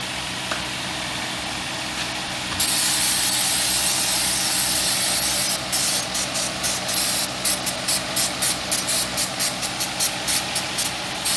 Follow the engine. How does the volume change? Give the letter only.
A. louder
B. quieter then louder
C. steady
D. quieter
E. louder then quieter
C.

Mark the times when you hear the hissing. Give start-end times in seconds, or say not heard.
0.0-11.3.